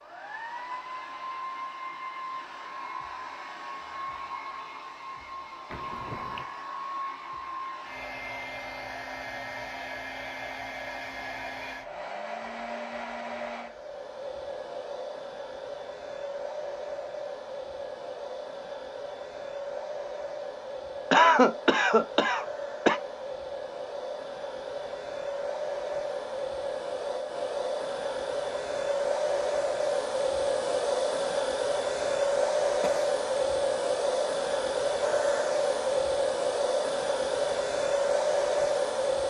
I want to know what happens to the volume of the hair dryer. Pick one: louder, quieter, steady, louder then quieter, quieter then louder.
louder.